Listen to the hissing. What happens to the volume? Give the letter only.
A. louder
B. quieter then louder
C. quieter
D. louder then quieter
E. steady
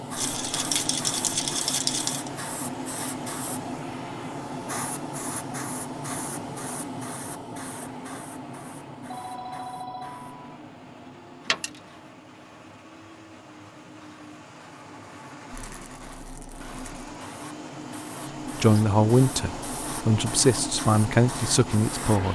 B.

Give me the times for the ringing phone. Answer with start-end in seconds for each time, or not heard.
9.1-10.4.